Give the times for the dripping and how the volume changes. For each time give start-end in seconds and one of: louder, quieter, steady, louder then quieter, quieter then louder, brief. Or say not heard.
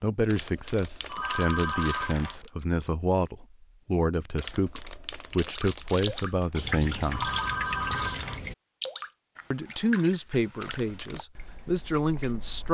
5.4-12.6 quieter.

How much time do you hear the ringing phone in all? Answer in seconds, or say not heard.
3 s.